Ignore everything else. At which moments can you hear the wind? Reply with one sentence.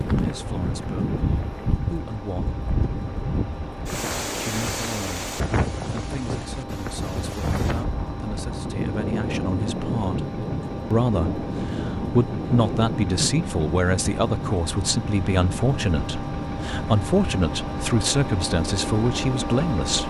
The wind can be heard from 0.0 to 20.0 s.